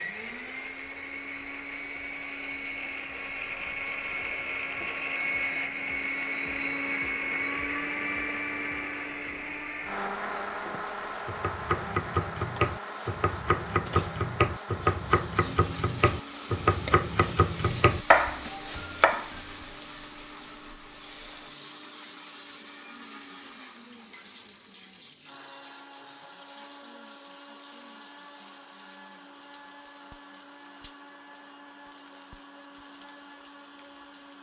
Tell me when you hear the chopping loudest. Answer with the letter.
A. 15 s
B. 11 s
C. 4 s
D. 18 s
D.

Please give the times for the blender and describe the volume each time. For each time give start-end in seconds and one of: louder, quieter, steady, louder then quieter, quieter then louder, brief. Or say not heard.
0.0-34.3 quieter.